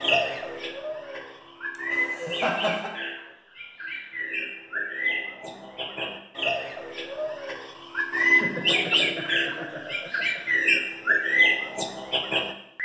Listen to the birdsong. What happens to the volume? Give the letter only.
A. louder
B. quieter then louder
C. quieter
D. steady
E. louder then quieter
A.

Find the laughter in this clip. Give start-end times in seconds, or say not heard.
1.8-2.9, 8.2-10.4.